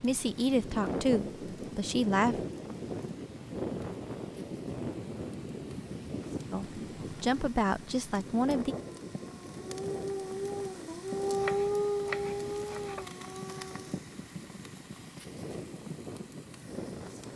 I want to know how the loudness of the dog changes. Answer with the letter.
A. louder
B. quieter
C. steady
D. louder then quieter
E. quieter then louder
D.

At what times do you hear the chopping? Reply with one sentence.
You can hear the chopping from 11.3 to 13.1 s.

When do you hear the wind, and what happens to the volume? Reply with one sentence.
You can hear the wind from 0.0 to 17.3 s, getting quieter.